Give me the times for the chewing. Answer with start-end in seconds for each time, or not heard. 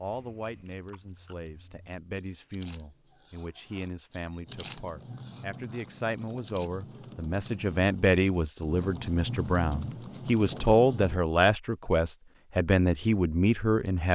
0.0-6.7.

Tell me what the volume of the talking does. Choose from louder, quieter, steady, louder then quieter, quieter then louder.
louder.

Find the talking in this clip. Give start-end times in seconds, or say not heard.
0.0-14.1.